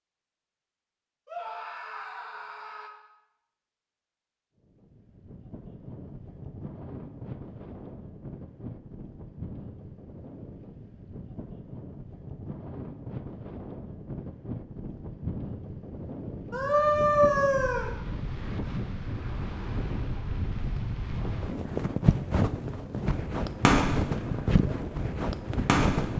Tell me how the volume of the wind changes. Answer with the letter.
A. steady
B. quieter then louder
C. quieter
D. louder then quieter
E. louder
E.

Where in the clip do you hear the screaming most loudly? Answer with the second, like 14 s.
17 s.